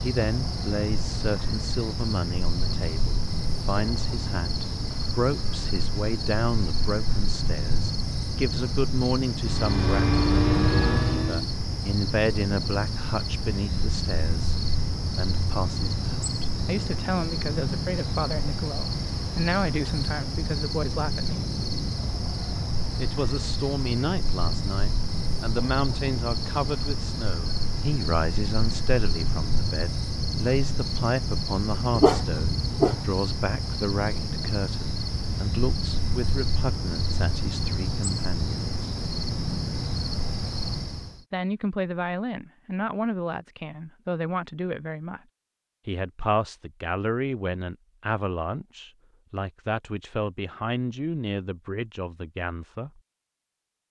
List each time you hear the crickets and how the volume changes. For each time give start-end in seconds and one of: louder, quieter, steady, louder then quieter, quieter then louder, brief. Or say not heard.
0.0-41.2 steady.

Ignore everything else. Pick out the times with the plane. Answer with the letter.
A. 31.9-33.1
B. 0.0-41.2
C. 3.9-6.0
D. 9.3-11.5
D.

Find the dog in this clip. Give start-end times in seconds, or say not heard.
31.9-33.1.